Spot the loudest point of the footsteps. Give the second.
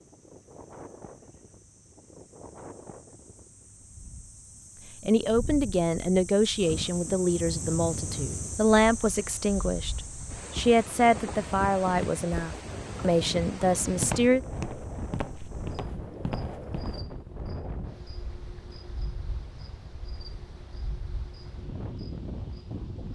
14 s.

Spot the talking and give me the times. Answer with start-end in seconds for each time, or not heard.
5.0-14.4.